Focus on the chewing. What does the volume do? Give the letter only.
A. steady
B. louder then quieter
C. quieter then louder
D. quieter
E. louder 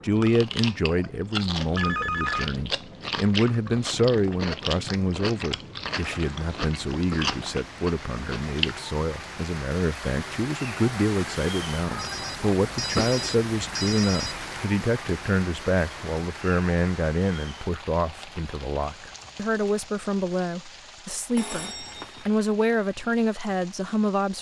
A.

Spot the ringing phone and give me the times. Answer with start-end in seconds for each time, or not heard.
1.8-2.5, 11.9-14.7, 21.4-22.2.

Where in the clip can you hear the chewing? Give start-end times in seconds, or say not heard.
0.1-8.8.